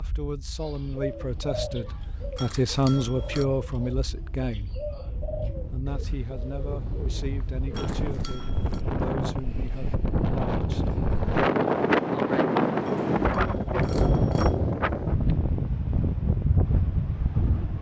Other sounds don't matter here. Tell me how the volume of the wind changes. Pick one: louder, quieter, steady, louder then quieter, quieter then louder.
louder.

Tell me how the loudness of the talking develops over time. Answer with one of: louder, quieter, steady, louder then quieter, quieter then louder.
louder then quieter.